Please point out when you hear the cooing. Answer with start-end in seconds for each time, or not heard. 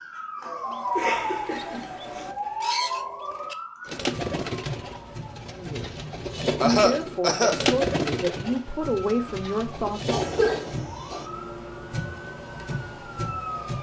0.5-10.8.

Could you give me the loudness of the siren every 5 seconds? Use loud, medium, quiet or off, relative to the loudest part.
loud, medium, loud.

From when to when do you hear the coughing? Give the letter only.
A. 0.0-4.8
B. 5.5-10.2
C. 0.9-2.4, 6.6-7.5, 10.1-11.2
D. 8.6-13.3
C.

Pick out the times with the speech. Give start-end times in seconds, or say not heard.
5.5-10.2.